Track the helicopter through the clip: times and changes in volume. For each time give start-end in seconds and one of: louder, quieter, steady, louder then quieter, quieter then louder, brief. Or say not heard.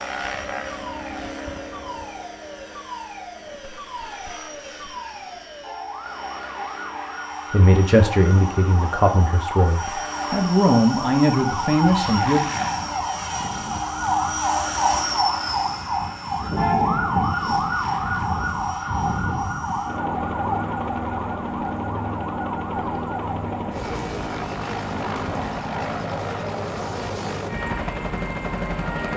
0.0-29.1 louder.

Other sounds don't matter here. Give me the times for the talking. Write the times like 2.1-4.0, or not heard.
7.5-12.4.